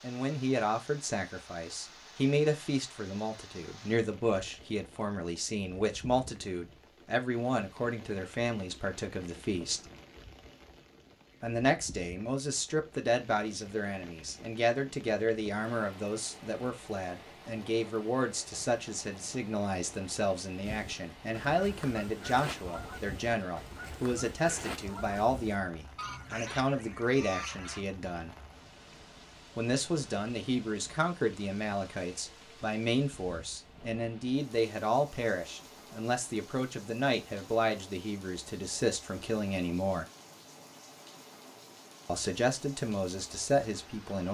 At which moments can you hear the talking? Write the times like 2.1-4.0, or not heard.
0.0-9.8, 11.4-28.4, 29.6-40.0, 42.0-44.2.